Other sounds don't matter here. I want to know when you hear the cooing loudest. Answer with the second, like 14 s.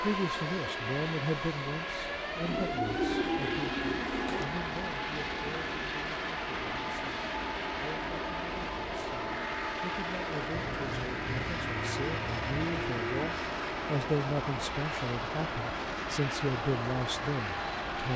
3 s.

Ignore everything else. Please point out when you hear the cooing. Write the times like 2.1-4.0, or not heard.
2.4-4.5, 10.5-13.2.